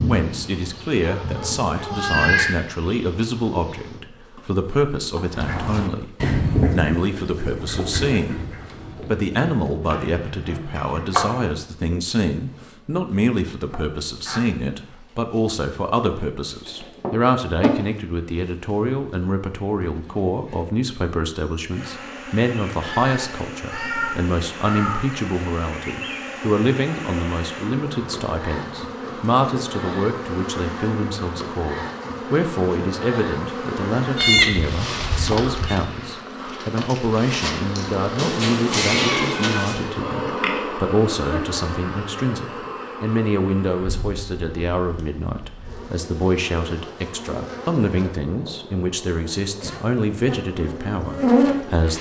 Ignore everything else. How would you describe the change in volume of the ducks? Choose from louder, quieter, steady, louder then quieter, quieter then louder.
quieter.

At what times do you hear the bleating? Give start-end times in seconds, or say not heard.
34.1-35.8.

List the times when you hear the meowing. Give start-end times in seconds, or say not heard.
1.1-2.5, 22.8-25.1, 38.1-39.8.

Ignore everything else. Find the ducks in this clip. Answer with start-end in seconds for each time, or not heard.
5.3-11.2.